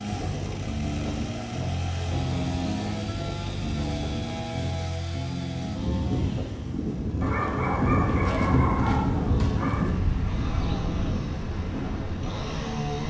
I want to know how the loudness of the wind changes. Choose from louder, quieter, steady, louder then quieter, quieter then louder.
louder then quieter.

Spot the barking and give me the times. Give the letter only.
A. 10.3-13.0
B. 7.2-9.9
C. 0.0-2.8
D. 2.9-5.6
B.